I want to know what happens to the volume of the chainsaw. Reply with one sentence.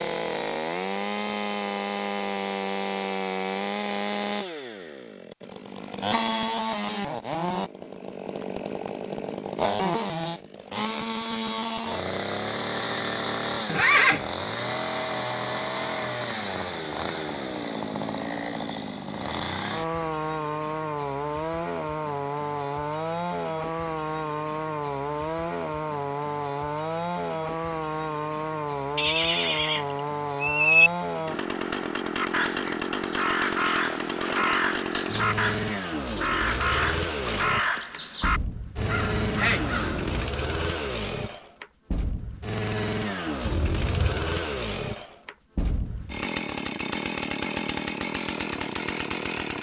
The volume of the chainsaw stays about the same.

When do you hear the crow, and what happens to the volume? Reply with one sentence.
The crow can be heard from 32.1 to 40.3 s, at a steady volume.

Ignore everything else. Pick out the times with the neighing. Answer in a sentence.
The neighing can be heard from 13.7 to 14.2 s, from 28.9 to 30.9 s and from 43.4 to 44.2 s.